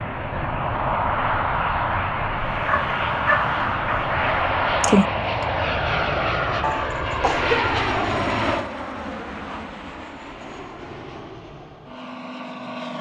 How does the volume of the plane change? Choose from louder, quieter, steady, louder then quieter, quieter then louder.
quieter.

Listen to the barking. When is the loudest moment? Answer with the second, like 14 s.
5 s.